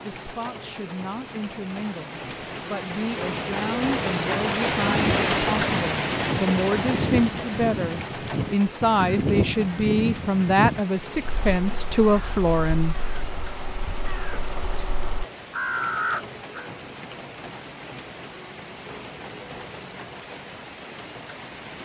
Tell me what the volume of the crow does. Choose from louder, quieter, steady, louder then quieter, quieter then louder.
quieter then louder.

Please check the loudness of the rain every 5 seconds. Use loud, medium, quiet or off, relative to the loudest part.
loud, loud, medium, medium, medium.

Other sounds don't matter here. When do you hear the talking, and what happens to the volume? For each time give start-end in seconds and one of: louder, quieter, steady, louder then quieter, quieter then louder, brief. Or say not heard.
0.0-12.9 louder.